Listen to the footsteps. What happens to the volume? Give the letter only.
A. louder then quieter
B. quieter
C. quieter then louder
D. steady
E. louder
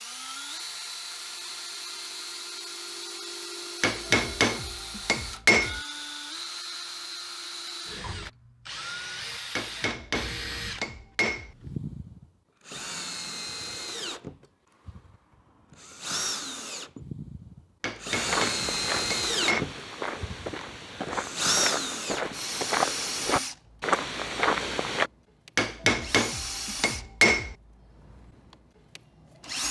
E.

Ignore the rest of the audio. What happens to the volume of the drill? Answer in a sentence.
The volume of the drill goes up, then down.